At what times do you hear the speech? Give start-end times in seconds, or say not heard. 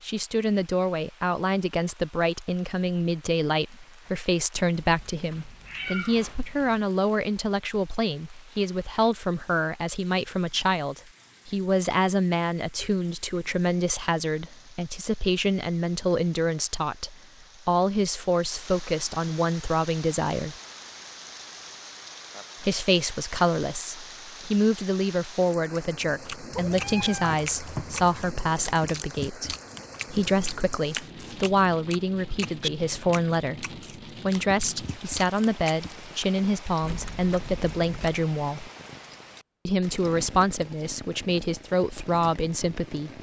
0.0-20.6, 22.6-38.7, 39.6-43.1.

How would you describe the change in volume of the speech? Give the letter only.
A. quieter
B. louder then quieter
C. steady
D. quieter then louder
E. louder
C.